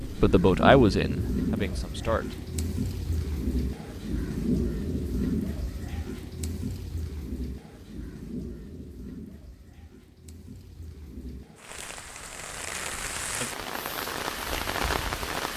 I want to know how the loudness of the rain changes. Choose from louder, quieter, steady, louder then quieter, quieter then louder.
quieter then louder.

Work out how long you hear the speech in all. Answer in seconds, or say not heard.
2 s.